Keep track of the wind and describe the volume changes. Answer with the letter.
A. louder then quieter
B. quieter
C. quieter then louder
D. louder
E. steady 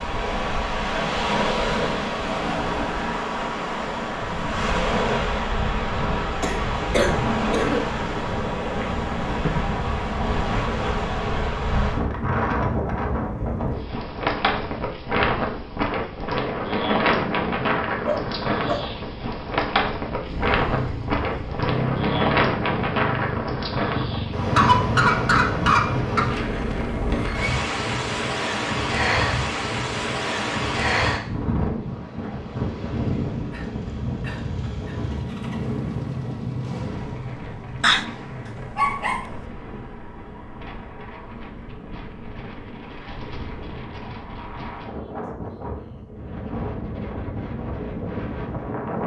B.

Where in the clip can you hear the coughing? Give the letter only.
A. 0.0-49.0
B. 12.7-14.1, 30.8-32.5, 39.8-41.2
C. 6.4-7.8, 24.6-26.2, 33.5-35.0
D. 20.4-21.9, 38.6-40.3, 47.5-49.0
C.